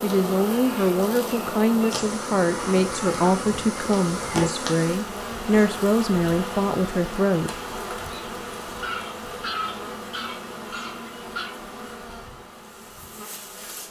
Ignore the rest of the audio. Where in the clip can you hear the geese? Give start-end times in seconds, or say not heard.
2.5-4.5, 8.8-11.6.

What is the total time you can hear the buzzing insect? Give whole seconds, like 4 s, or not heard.
14 s.